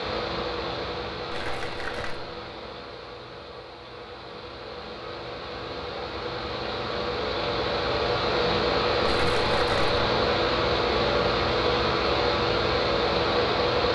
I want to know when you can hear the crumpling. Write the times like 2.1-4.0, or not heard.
1.3-2.2, 9.1-9.9.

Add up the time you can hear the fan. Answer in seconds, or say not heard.
14 s.